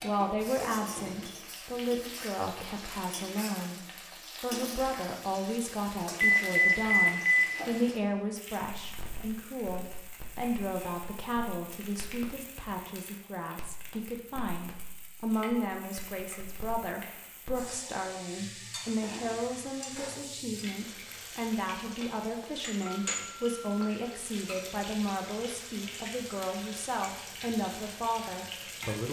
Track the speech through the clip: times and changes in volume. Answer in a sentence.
The speech can be heard from 0.0 to 29.0 s, at a steady volume.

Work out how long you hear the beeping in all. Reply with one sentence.
The beeping can be heard for 3 seconds in total.